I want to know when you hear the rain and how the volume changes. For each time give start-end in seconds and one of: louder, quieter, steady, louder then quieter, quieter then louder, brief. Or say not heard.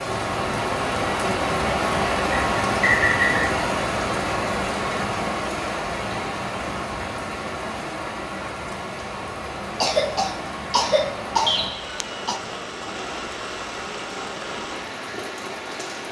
0.0-16.0 quieter.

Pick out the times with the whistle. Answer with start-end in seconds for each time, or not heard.
2.3-3.5, 11.4-11.9.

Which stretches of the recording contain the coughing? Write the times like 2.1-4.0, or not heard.
9.8-12.4.